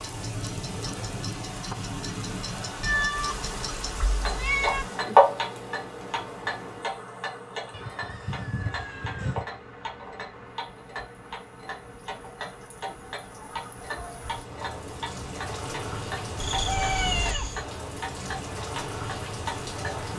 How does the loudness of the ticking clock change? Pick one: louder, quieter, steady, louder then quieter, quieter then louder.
louder then quieter.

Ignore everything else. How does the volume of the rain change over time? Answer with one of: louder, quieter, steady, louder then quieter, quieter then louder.
quieter then louder.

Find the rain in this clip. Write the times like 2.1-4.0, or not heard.
0.0-20.1.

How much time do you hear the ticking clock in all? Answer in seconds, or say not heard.
20 s.